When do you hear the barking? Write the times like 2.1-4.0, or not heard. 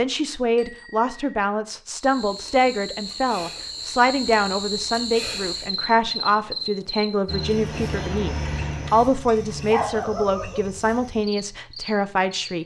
9.2-10.6.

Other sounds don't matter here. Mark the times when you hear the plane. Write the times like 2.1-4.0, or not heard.
7.2-9.7.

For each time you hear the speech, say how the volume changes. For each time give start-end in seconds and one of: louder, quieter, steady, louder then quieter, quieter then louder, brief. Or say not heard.
0.0-12.6 steady.